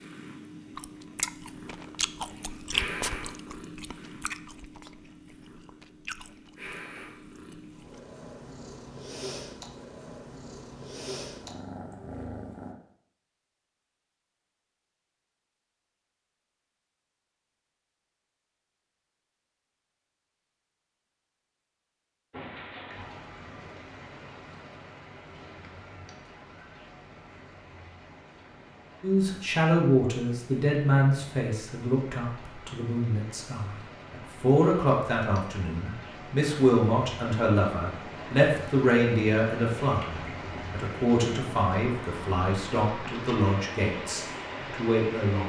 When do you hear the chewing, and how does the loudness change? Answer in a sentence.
You can hear the chewing from 0.8 to 8.0 s, getting quieter.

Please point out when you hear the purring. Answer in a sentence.
You can hear the purring from 0.0 to 12.8 s.